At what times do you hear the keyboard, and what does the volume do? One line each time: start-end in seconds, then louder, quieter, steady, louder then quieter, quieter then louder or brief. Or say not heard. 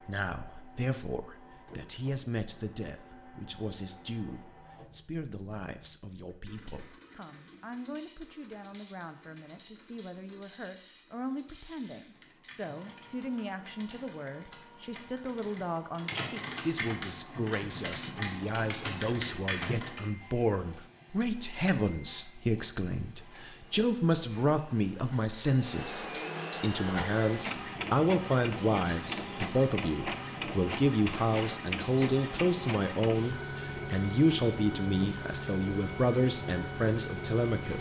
12.0-20.1 louder.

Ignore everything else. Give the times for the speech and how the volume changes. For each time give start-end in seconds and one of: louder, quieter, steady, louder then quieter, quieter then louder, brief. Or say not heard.
0.0-37.7 louder.